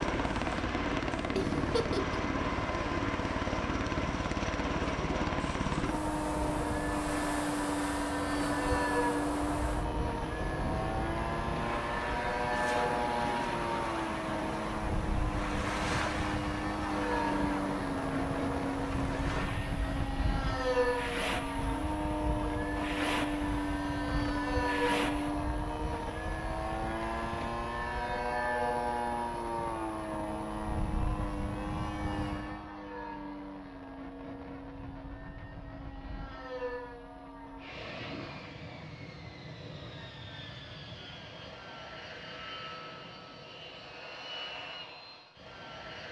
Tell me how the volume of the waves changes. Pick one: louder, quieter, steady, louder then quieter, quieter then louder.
steady.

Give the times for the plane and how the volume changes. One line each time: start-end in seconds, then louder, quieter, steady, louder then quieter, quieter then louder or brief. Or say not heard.
0.0-46.0 quieter.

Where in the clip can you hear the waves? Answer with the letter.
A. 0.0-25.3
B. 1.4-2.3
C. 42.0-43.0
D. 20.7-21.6
A.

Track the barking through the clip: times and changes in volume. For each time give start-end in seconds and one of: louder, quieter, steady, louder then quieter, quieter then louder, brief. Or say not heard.
not heard.